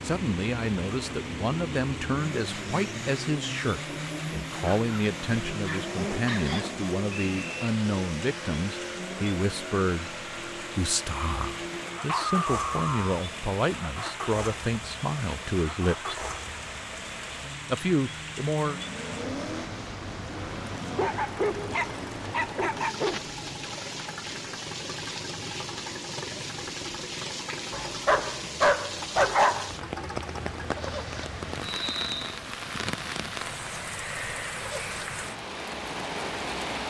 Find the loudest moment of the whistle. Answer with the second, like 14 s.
32 s.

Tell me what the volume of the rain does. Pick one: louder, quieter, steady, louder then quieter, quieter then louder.
louder.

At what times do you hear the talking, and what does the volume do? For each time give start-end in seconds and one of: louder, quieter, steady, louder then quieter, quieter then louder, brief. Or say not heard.
0.0-16.1 steady
17.6-18.8 brief.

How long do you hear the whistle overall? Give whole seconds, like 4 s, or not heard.
2 s.